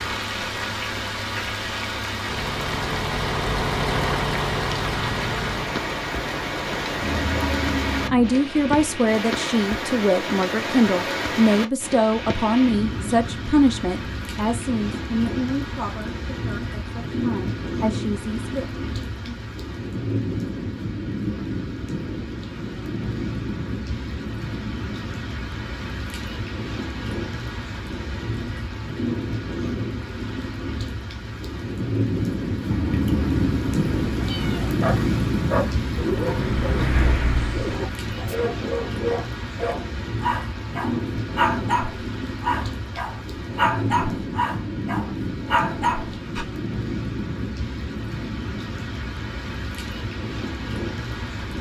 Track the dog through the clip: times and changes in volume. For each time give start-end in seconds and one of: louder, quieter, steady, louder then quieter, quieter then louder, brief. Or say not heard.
34.8-46.5 steady.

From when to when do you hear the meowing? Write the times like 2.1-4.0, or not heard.
7.0-8.3, 32.6-34.7.